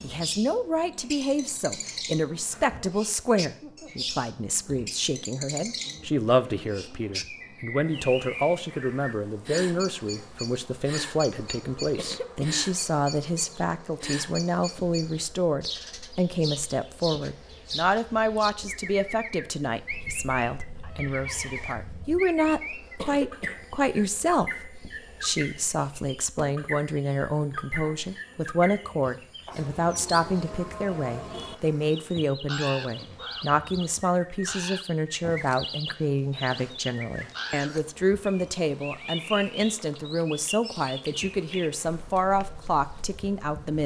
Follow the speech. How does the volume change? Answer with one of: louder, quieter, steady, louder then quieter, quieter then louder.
steady.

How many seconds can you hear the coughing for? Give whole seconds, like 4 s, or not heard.
2 s.